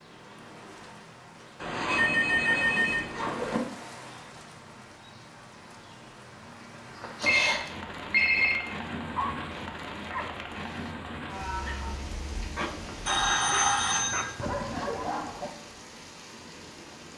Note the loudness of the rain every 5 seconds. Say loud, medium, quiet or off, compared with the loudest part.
medium, loud, loud, medium.